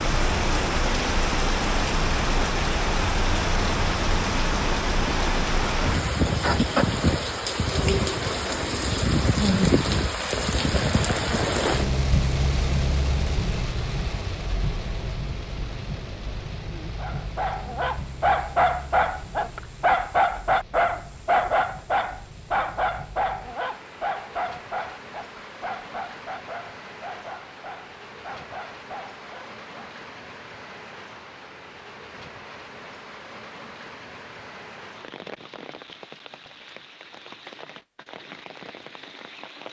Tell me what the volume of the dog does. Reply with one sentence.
The volume of the dog goes down.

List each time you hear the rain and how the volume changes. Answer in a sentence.
You can hear the rain from 0.0 to 39.6 s, getting quieter.